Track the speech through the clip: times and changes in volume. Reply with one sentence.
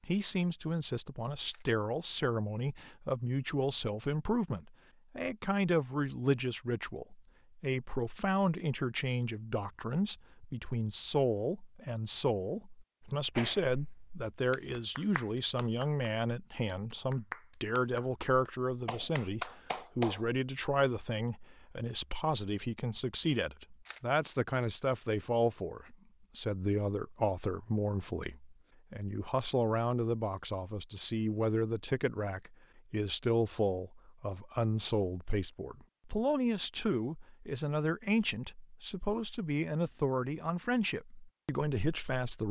You can hear the speech from 0.0 to 42.4 s, at a steady volume.